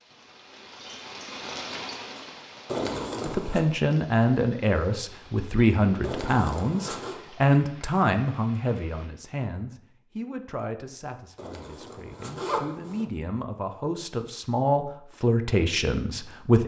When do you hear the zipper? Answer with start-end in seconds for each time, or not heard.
2.6-3.6, 6.0-7.2, 11.3-13.1.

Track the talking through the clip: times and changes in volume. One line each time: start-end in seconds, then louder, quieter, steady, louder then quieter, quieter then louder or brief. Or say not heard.
3.2-16.6 quieter then louder.